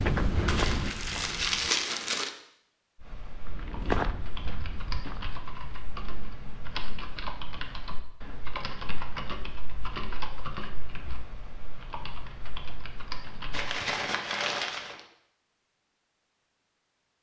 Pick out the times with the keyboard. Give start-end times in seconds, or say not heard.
3.0-13.8.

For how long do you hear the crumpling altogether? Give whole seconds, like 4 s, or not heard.
3 s.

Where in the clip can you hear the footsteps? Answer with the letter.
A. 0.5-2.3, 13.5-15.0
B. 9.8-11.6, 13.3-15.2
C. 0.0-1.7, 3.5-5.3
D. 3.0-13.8
C.